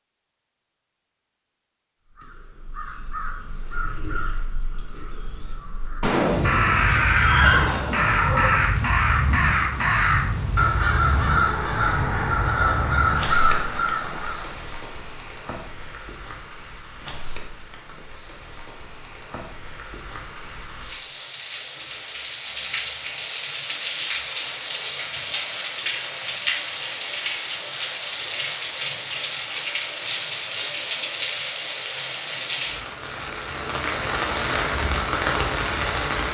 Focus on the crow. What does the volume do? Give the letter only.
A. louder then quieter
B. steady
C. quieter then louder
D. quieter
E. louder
E.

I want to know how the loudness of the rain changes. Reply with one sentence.
The loudness of the rain goes down, then up.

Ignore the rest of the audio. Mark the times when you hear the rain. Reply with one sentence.
You can hear the rain from 6.2 to 36.2 s.